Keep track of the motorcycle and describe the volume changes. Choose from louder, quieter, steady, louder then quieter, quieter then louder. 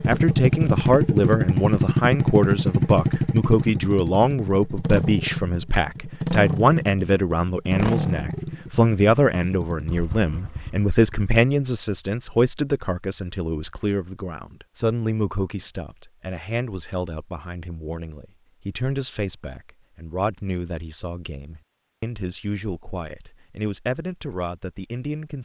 quieter.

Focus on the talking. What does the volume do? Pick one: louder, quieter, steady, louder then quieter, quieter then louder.
quieter.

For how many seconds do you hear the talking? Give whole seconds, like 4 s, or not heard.
25 s.